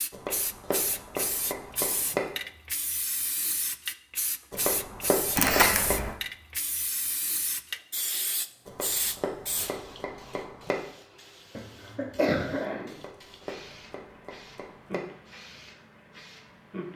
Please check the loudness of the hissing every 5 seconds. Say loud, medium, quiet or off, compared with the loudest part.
loud, loud, quiet, medium.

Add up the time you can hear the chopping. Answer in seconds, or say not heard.
8 s.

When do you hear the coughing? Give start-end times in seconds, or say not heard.
5.3-6.1, 11.6-12.9.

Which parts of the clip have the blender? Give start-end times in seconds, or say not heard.
not heard.